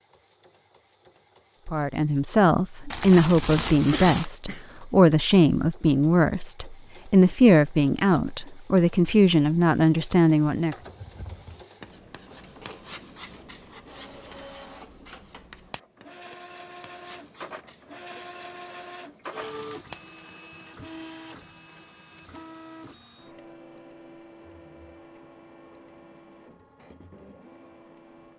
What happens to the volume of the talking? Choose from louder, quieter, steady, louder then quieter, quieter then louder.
steady.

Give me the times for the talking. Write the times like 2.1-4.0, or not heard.
1.6-10.8.